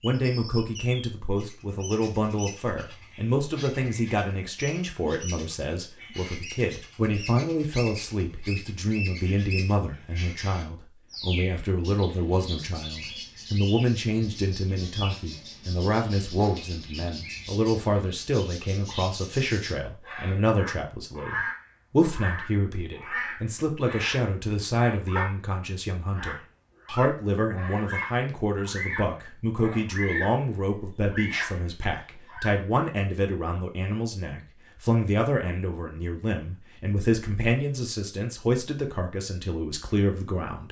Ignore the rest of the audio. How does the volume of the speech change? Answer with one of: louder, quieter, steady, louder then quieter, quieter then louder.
steady.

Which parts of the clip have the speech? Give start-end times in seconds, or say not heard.
0.0-40.6.